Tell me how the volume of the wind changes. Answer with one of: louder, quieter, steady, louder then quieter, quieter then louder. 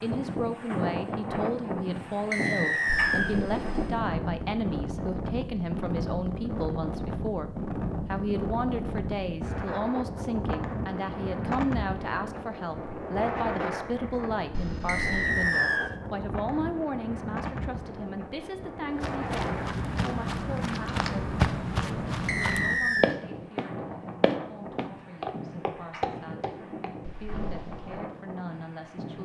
quieter.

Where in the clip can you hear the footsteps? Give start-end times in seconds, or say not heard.
18.9-28.0.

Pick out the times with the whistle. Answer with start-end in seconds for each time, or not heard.
2.3-3.4, 14.8-15.9, 22.2-23.1.